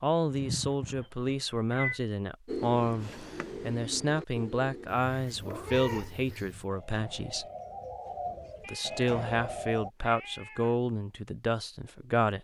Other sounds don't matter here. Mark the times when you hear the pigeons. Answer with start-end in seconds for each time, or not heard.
2.5-9.9.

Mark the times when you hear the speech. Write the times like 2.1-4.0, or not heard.
0.0-7.5, 8.7-12.3.